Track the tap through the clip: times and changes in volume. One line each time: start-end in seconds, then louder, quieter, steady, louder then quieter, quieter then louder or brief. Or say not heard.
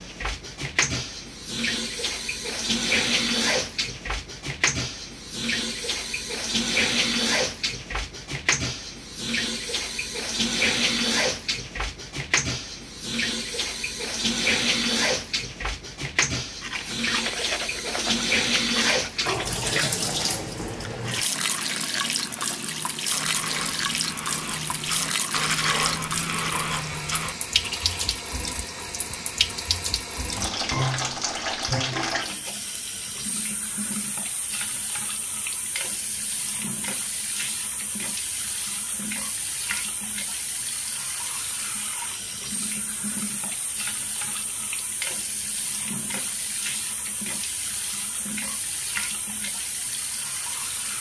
0.0-50.9 quieter.